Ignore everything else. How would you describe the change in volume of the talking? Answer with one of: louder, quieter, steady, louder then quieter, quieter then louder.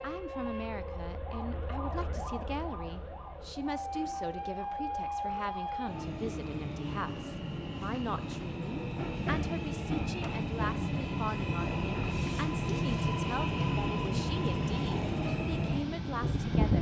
steady.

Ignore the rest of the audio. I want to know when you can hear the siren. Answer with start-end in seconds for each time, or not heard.
0.0-6.0.